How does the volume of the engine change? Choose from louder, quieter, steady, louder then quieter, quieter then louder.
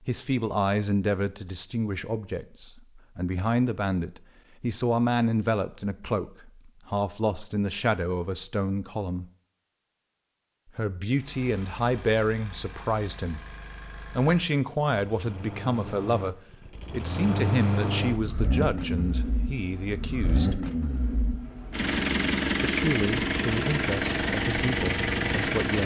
louder.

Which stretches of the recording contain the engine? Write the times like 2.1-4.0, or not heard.
11.1-25.8.